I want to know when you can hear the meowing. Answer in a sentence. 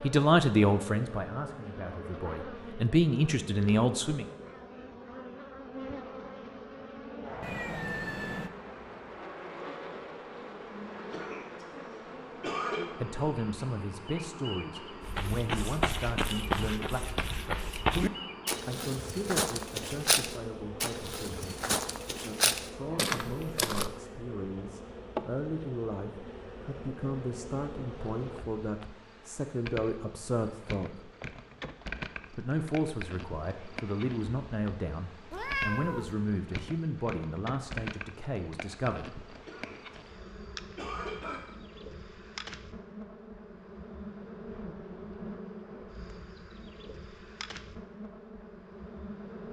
You can hear the meowing from 7.4 to 8.5 s and from 35.3 to 36.1 s.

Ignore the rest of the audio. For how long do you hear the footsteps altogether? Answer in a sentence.
You can hear the footsteps for 9 seconds altogether.